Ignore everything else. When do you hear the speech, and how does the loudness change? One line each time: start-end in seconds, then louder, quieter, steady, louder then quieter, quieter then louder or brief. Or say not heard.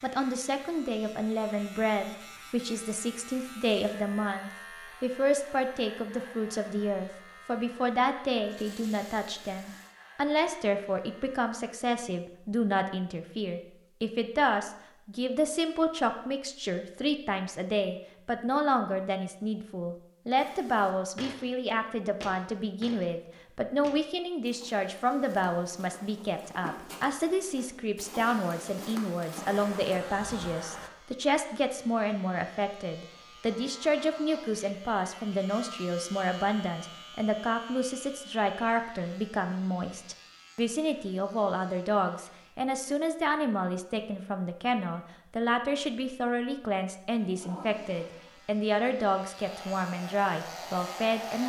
0.0-51.4 steady.